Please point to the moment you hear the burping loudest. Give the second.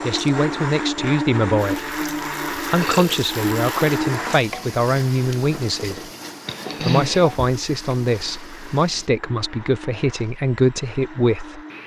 7 s.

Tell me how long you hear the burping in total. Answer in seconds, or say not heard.
2 s.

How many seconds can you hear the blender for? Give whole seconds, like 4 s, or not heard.
12 s.